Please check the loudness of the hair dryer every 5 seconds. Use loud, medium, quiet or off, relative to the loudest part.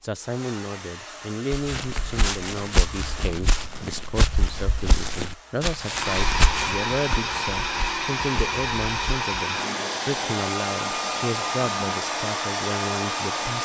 quiet, loud, loud.